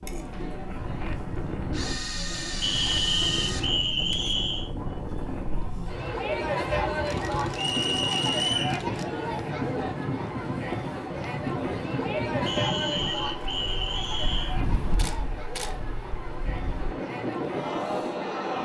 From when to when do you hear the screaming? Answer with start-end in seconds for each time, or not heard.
not heard.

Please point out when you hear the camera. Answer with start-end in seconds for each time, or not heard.
1.7-3.7, 7.0-9.1, 14.9-15.8.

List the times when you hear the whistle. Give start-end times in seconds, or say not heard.
2.6-4.7, 7.5-8.8, 12.4-14.6.